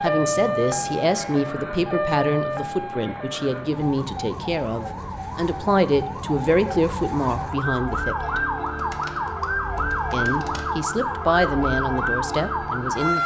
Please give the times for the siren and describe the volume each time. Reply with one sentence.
You can hear the siren from 0.0 to 13.2 s, getting quieter then louder.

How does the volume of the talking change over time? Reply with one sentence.
The loudness of the talking stays about the same.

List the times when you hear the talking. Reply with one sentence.
The talking can be heard from 0.0 to 8.4 s and from 10.1 to 13.2 s.